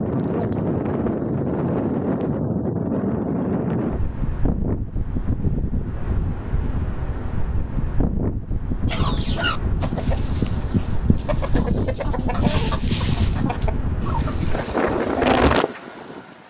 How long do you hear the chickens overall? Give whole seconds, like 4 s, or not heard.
7 s.